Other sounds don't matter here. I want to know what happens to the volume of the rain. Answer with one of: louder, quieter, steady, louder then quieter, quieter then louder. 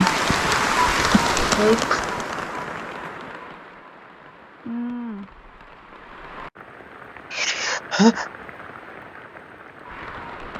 quieter.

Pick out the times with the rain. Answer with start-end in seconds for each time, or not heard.
0.0-10.5.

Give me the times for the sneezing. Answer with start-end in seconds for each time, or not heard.
1.1-2.0, 7.3-8.2.